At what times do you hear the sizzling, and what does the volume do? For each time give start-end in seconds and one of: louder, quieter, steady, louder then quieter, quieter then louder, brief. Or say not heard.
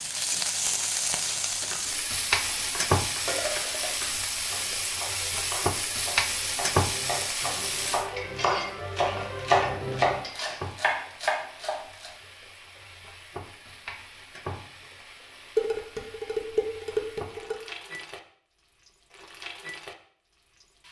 0.0-20.8 quieter.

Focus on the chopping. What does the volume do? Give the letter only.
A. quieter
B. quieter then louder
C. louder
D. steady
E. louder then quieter
C.